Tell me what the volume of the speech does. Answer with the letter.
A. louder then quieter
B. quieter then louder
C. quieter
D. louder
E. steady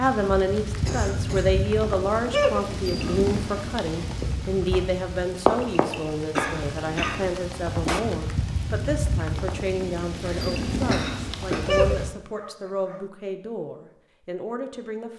C.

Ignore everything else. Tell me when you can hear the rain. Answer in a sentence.
The rain can be heard from 0.0 to 12.2 s.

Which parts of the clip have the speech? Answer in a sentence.
The speech can be heard from 0.0 to 15.1 s.